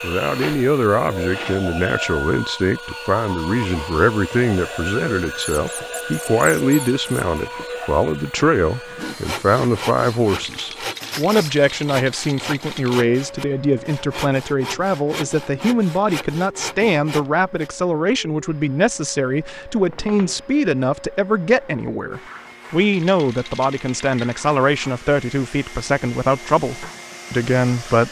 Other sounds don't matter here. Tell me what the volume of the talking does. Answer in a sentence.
The volume of the talking stays about the same.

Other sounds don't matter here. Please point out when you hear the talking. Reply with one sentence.
You can hear the talking from 0.0 to 28.0 s.